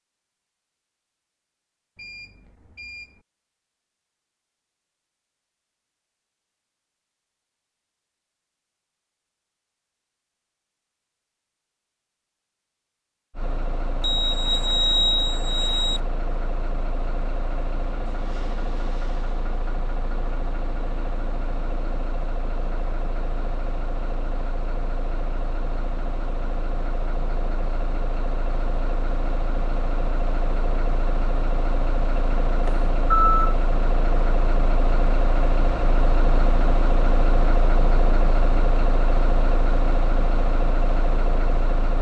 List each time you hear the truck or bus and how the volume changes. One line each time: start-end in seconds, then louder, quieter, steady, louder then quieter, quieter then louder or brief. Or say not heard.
13.3-41.9 louder.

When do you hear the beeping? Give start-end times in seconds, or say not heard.
1.9-3.1, 14.0-16.0, 32.6-33.5.